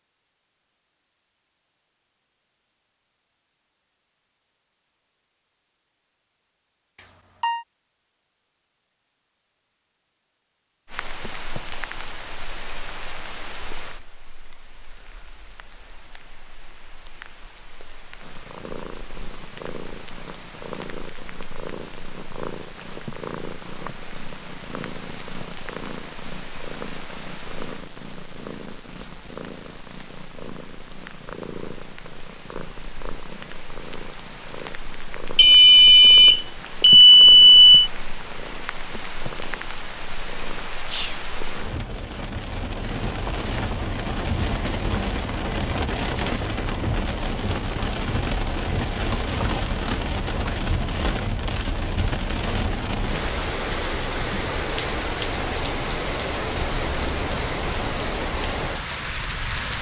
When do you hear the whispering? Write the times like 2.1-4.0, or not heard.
40.9-41.3.